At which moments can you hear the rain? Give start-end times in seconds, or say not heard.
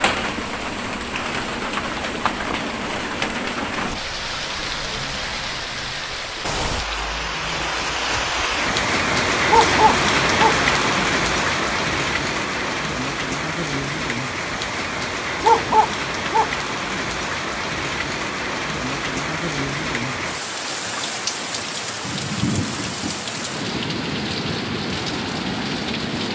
0.0-26.3.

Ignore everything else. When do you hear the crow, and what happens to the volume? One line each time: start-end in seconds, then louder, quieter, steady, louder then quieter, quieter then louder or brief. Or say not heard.
not heard.